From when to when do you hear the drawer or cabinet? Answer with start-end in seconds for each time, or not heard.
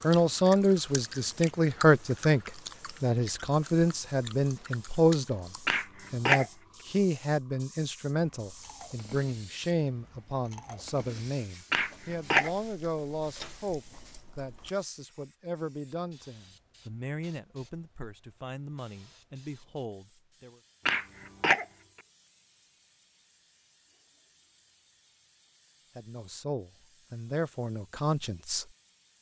not heard.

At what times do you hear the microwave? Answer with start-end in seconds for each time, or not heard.
not heard.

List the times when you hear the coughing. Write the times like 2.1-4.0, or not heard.
5.7-6.5, 11.7-12.5, 20.9-21.6.